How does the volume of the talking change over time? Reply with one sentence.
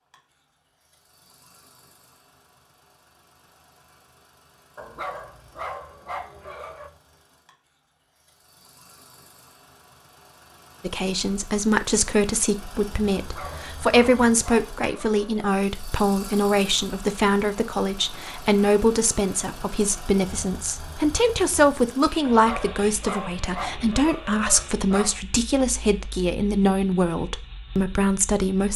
The loudness of the talking stays about the same.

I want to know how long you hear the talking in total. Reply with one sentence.
You can hear the talking for 18 seconds altogether.